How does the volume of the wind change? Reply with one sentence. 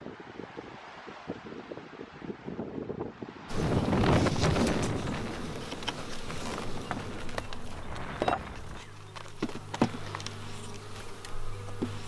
The loudness of the wind goes up, then down.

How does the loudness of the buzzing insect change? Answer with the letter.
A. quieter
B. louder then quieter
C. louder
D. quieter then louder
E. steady
B.